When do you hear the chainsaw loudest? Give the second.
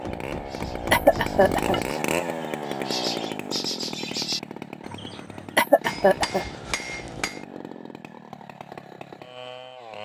2 s.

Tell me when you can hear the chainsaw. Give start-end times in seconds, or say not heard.
0.0-10.0.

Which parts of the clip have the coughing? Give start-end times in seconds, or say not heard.
0.9-1.8, 5.5-6.5.